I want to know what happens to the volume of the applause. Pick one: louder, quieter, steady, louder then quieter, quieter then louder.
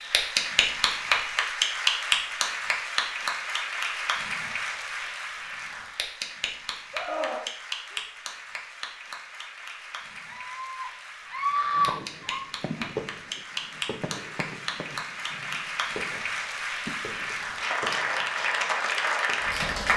quieter then louder.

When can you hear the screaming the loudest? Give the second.
12 s.